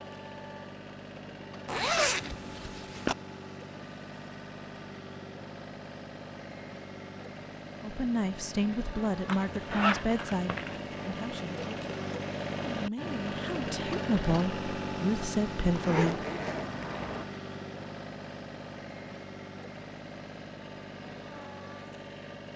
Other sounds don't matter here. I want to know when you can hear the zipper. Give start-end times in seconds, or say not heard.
1.6-3.1, 9.2-10.8, 15.7-17.2.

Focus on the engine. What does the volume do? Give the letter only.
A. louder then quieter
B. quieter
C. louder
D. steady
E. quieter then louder
A.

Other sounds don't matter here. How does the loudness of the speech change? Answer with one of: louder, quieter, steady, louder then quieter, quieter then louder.
quieter then louder.